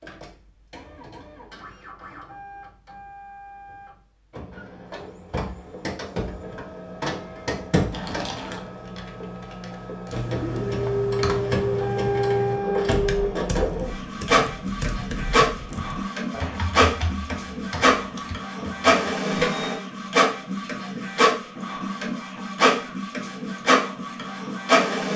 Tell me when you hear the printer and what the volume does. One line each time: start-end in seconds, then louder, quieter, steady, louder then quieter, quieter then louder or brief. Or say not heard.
0.0-25.1 louder.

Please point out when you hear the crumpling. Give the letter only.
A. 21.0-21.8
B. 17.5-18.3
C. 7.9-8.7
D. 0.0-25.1
C.